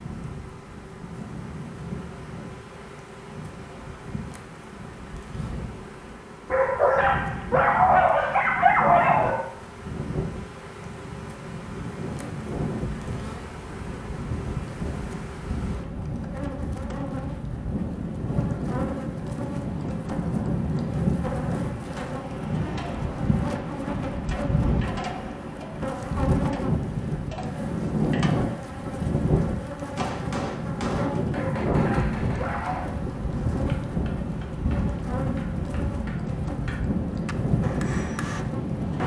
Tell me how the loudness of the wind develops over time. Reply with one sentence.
The volume of the wind goes up.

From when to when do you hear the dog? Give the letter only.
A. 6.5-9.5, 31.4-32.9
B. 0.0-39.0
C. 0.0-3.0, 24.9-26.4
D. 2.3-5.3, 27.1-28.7
A.